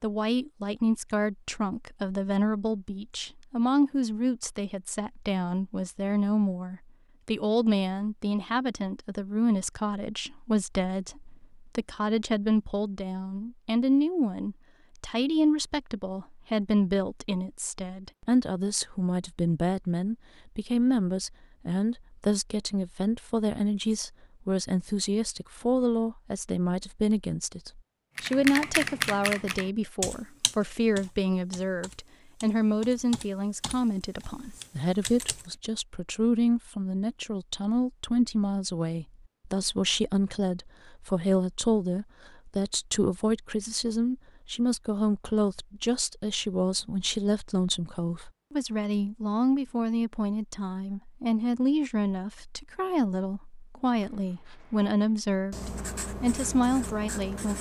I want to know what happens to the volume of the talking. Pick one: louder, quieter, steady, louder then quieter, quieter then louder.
steady.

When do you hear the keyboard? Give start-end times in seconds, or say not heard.
28.1-35.5.